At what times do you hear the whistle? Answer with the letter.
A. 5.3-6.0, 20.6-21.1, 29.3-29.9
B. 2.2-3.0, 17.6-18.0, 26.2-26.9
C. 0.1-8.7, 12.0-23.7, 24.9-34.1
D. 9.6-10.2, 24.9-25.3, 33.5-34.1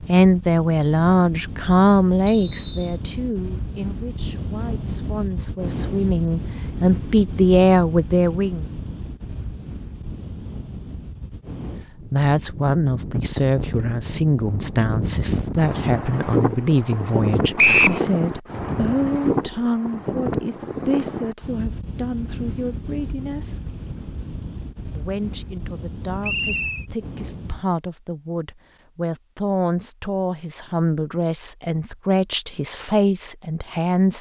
B.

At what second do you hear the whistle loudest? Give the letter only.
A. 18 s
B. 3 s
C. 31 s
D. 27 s
A.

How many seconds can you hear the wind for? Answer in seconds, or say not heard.
28 s.